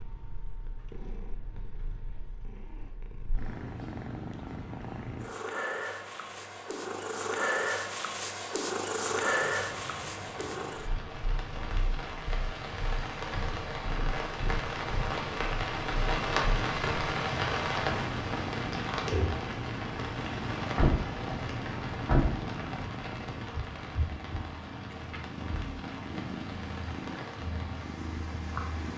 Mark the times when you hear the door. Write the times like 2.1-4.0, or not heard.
20.6-22.4.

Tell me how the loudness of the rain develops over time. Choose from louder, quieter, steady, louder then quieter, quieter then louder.
louder then quieter.